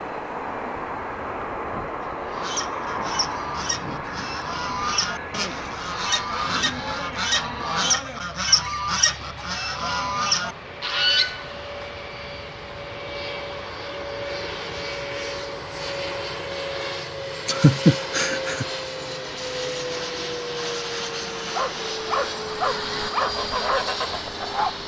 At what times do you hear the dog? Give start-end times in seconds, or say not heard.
21.5-24.8.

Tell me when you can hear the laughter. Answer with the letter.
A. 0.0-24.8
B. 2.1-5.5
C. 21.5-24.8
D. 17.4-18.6
D.